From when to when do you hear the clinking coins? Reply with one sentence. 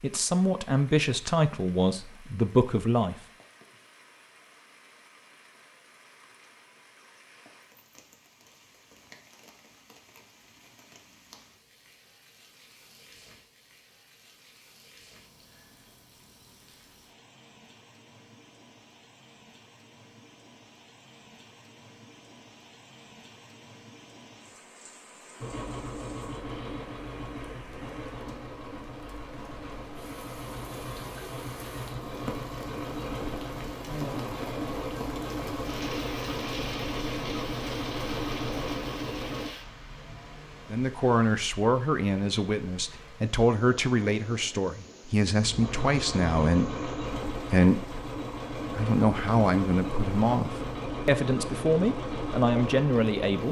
You can't hear the clinking coins here.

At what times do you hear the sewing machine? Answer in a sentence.
You can hear the sewing machine from 25.4 to 39.5 s and from 45.4 to 53.4 s.